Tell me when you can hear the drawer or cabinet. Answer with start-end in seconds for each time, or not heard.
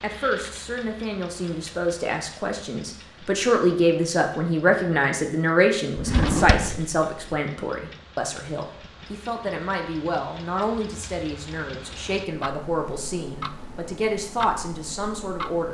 6.0-7.4.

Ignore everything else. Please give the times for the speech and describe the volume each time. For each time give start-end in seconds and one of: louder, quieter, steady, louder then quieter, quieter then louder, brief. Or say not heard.
0.0-15.6 louder then quieter.